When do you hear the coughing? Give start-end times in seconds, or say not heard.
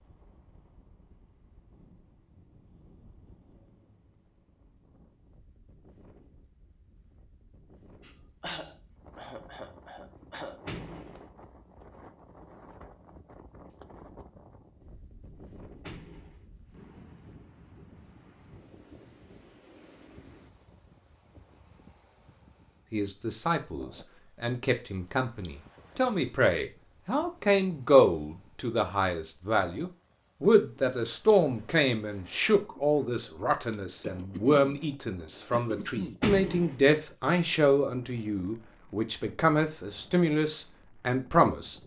8.0-10.6, 33.7-34.8, 35.5-36.2.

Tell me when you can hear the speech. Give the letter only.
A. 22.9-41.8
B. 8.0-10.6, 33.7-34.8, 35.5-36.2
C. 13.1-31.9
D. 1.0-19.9
A.